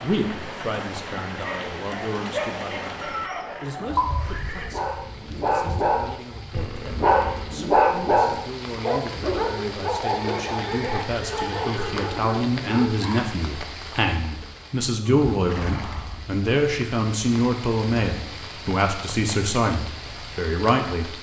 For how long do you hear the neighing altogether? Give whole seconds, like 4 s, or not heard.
4 s.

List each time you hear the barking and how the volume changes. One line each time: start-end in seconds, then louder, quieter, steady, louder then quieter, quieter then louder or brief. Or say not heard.
1.4-13.3 louder then quieter.